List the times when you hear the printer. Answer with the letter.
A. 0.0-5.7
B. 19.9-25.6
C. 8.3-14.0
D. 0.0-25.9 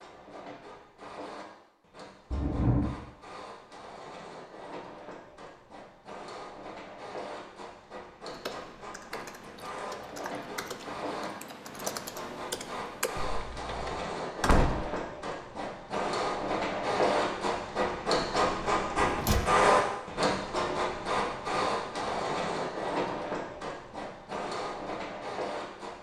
D.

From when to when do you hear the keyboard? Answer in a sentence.
The keyboard can be heard from 8.3 to 14.0 s.